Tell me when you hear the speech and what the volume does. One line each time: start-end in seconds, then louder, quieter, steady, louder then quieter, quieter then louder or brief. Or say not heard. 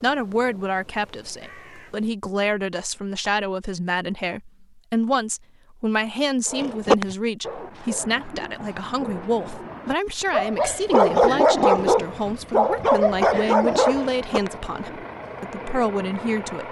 0.0-16.6 steady.